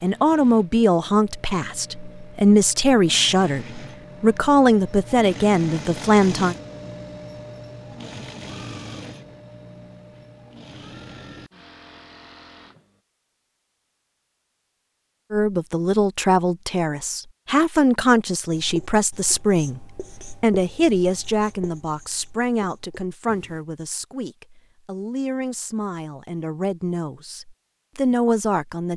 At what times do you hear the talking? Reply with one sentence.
The talking can be heard from 0.0 to 6.5 s and from 15.3 to 28.9 s.